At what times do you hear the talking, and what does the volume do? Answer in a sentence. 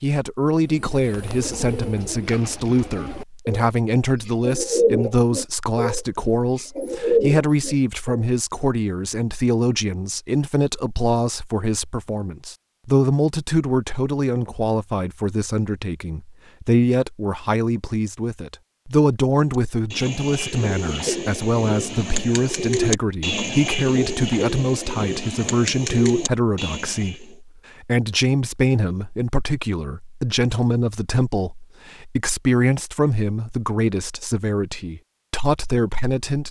You can hear the talking from 0.0 to 36.4 s, at a steady volume.